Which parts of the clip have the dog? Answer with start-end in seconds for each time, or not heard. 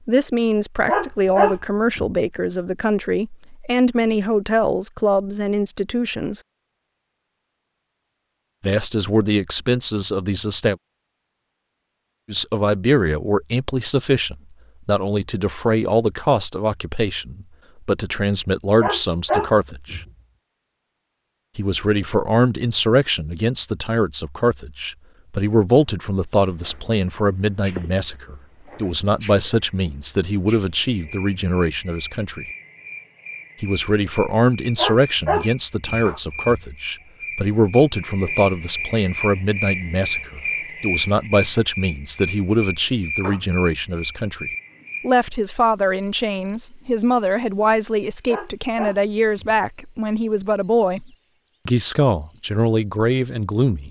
0.8-2.1, 18.8-20.1, 34.8-36.6, 48.2-49.6.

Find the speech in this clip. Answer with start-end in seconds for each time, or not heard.
0.1-6.4, 8.6-10.8, 12.2-20.0, 21.6-32.5, 33.6-51.0, 51.6-53.8.